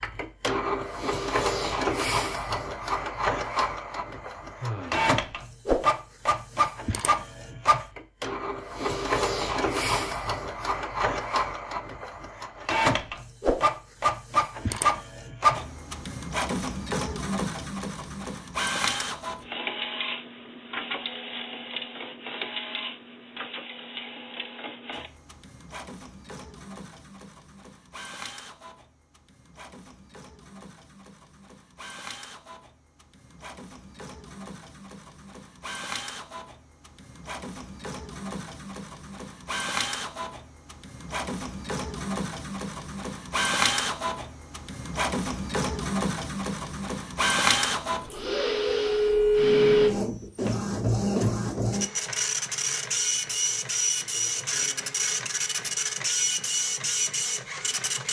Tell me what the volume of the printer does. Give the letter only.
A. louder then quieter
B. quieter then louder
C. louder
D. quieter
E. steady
B.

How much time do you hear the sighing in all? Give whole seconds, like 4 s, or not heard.
2 s.